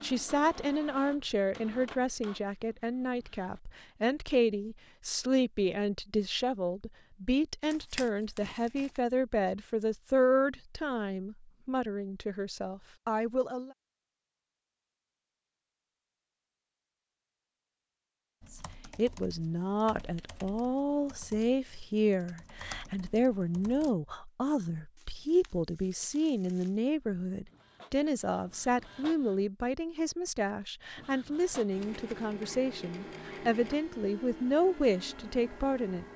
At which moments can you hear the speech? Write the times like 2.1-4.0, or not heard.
0.0-13.7, 18.5-36.0.